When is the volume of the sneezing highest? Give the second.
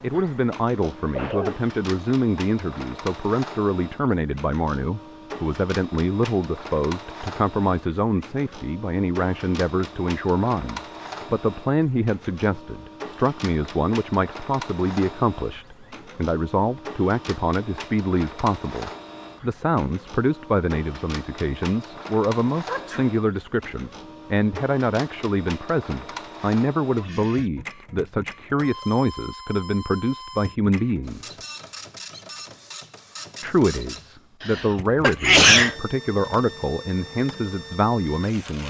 35 s.